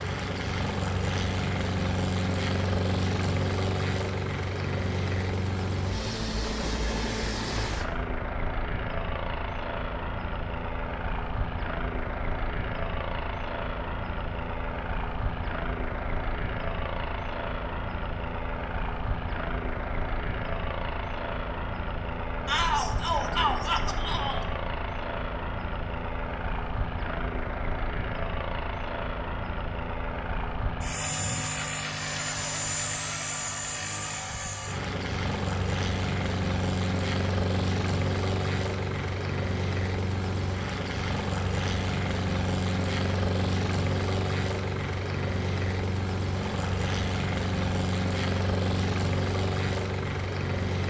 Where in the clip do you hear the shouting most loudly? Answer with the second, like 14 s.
23 s.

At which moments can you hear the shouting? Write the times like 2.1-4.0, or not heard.
22.4-24.4.